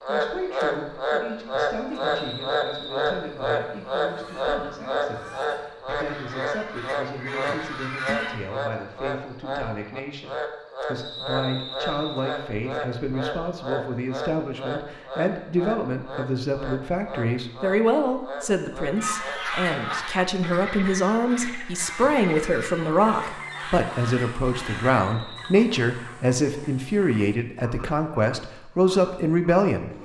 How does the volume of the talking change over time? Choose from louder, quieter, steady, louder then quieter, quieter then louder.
louder.